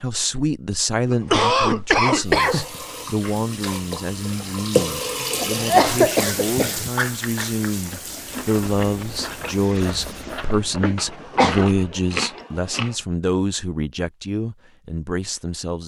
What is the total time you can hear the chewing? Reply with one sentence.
You can hear the chewing for 6 seconds altogether.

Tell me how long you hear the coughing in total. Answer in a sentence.
You can hear the coughing for 4 seconds altogether.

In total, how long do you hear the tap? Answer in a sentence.
The tap can be heard for 8 seconds in total.